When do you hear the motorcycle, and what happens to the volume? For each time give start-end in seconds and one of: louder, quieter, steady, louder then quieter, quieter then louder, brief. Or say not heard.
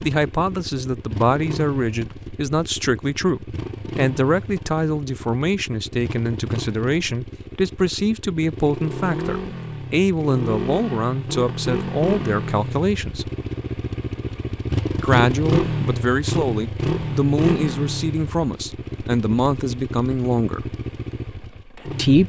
0.0-22.2 louder then quieter.